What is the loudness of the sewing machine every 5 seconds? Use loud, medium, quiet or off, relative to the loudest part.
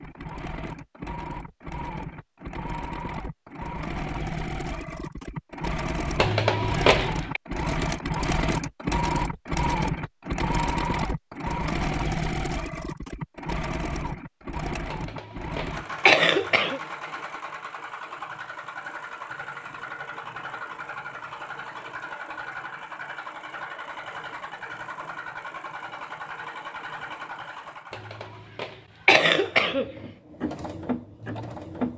medium, loud, loud, medium, medium, medium, medium.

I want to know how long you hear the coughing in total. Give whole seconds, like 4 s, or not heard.
5 s.